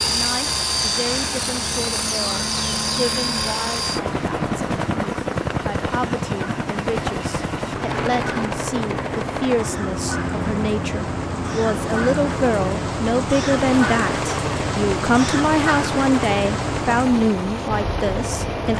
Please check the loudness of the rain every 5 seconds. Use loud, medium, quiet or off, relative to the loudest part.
medium, medium, loud, loud.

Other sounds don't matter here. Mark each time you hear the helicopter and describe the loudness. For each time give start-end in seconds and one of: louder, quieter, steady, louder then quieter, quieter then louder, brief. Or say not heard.
0.0-18.7 quieter.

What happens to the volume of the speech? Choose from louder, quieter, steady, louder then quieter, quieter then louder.
louder.